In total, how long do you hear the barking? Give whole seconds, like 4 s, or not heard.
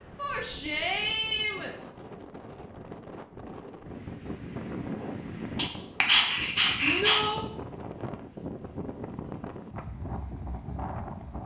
2 s.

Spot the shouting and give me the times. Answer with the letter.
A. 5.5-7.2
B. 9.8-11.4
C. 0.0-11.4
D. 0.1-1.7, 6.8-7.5
D.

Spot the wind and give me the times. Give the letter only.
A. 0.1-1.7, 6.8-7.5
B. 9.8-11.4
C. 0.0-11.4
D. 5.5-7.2
C.